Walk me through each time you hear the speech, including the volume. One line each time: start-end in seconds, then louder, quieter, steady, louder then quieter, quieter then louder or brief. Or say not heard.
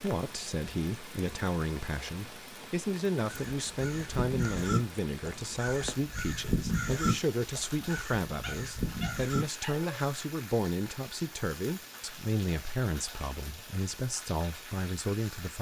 0.0-15.5 steady.